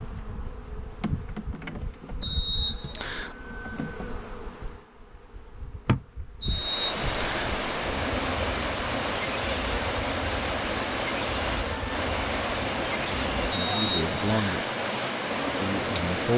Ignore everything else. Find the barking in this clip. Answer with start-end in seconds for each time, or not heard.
not heard.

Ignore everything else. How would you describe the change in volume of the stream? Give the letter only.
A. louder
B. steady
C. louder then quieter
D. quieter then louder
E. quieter
B.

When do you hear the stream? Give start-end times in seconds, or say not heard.
6.5-16.3.